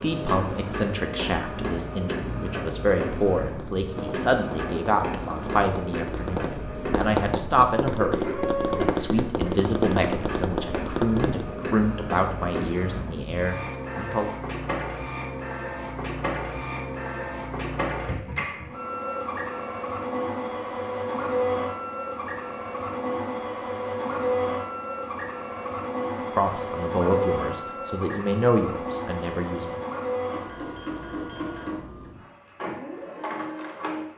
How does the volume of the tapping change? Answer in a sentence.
The volume of the tapping goes up.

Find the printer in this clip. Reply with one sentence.
The printer can be heard from 0.0 to 34.1 s.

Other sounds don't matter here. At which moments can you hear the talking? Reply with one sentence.
The talking can be heard from 0.0 to 14.3 s and from 26.1 to 29.8 s.